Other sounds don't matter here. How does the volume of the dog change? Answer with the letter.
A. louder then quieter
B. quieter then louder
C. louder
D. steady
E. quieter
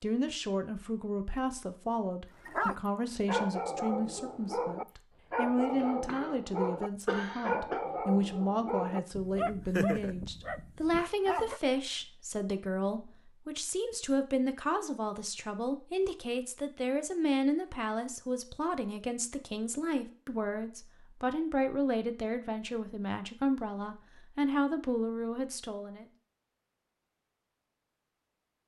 D.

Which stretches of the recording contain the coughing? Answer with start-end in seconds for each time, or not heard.
5.8-6.4, 7.0-7.8.